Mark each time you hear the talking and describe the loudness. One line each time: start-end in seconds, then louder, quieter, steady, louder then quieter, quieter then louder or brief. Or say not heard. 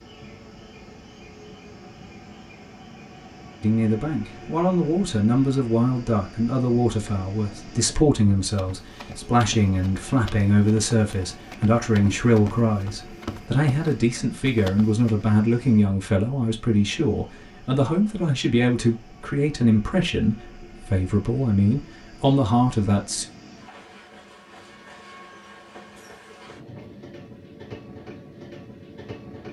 3.6-23.2 steady.